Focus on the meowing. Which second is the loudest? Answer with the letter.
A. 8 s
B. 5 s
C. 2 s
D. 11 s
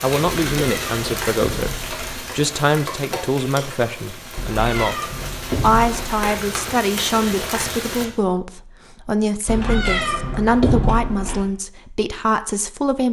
D.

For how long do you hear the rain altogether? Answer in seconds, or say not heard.
8 s.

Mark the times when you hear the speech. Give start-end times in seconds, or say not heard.
0.0-13.0.